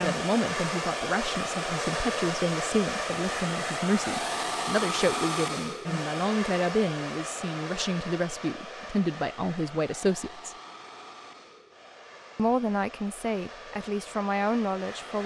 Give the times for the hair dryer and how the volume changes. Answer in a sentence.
You can hear the hair dryer from 0.0 to 15.2 s, getting quieter.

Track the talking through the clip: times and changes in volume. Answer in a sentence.
The talking can be heard from 0.0 to 10.5 s, at a steady volume; and briefly from 12.3 to 15.2 s.